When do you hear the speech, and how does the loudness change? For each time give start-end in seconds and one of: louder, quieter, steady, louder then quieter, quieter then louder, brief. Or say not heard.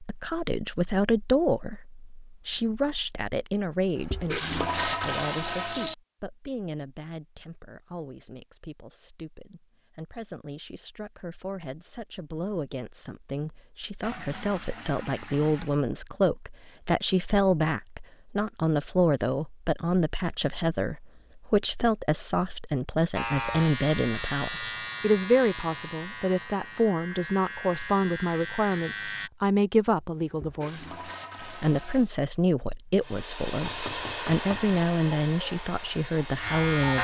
0.0-36.9 quieter then louder.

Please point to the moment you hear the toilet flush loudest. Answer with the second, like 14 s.
5 s.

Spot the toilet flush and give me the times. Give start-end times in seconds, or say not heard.
4.0-6.0, 14.0-15.8, 30.2-32.1.